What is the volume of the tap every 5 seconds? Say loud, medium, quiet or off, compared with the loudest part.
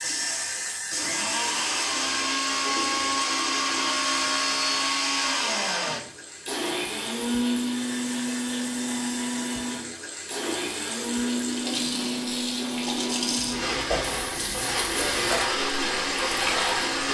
medium, medium, loud, loud.